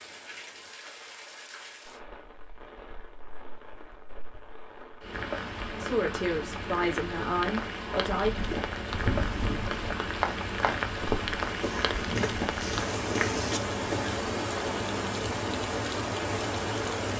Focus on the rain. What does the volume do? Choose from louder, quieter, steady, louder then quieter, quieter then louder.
louder.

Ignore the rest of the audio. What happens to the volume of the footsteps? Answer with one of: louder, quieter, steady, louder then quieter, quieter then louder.
steady.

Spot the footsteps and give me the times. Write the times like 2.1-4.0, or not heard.
8.2-14.2.